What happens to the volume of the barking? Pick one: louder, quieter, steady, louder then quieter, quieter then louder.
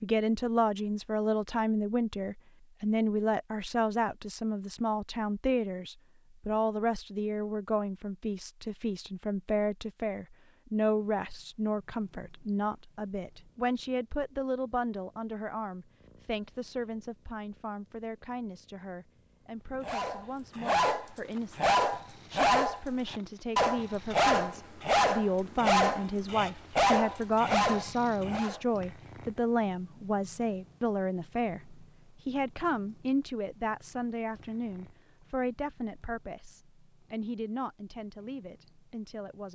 steady.